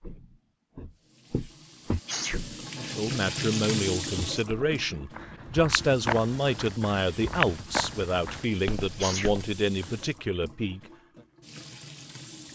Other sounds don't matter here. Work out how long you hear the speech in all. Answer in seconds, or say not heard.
8 s.